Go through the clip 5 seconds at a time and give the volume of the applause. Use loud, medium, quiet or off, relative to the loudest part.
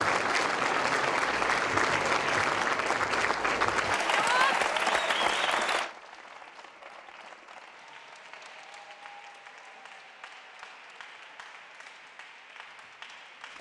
loud, medium, quiet.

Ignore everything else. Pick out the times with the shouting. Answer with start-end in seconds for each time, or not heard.
4.0-4.5.